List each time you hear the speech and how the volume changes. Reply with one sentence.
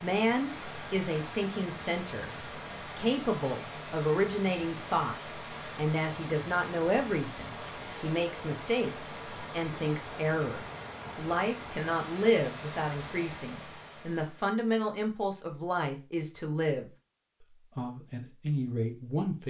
The speech can be heard from 0.0 to 16.9 s, at a steady volume; and briefly from 17.8 to 19.4 s.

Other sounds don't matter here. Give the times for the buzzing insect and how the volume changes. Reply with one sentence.
The buzzing insect can't be heard in this clip.